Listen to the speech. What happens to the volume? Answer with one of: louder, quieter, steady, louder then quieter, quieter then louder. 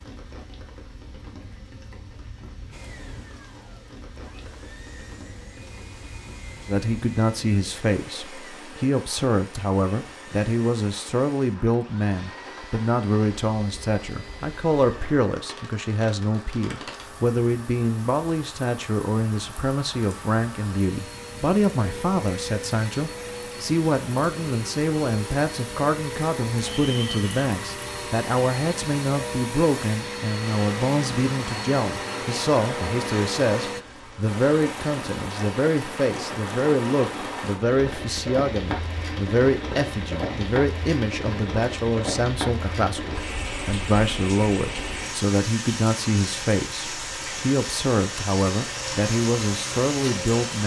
steady.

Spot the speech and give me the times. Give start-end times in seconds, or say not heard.
6.7-50.6.